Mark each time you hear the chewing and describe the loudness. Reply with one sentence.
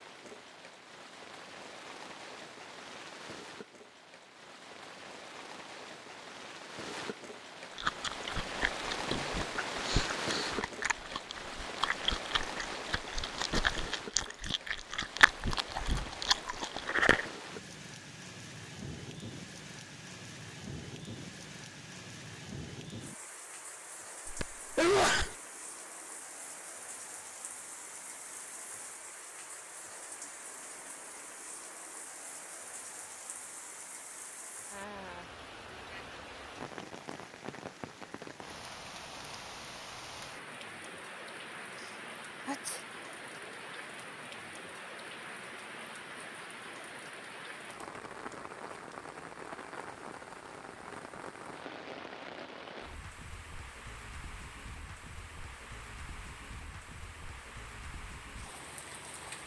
You can hear the chewing from 7.7 to 17.2 s, getting louder.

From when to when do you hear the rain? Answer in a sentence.
The rain can be heard from 0.0 to 59.4 s.